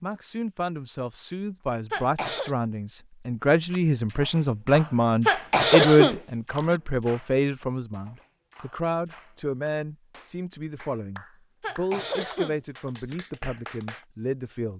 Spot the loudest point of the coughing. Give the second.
6 s.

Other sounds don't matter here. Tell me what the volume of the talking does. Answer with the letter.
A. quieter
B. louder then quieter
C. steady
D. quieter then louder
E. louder
B.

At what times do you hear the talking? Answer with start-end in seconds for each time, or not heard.
0.0-14.7.